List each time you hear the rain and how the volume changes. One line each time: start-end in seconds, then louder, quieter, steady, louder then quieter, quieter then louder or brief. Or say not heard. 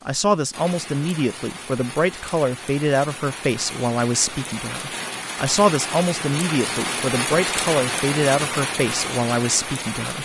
0.0-10.2 louder.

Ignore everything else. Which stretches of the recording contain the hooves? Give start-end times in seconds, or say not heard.
not heard.